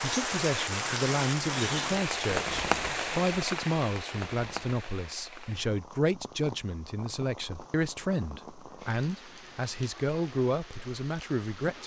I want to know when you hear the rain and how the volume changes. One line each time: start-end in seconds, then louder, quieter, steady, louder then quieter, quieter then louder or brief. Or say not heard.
0.0-11.8 quieter.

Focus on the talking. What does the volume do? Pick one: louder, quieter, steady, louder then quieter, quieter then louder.
steady.